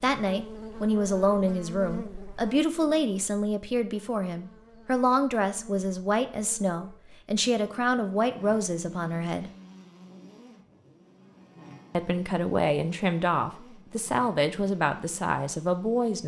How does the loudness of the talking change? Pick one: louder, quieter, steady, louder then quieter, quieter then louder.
steady.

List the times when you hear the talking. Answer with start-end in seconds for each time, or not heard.
0.0-9.5, 11.9-16.2.